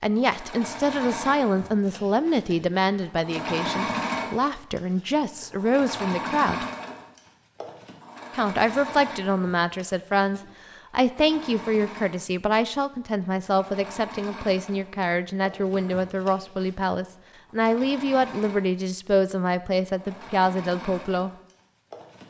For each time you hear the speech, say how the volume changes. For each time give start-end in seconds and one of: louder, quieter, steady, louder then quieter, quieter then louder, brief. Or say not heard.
0.0-6.7 steady
8.3-21.3 steady.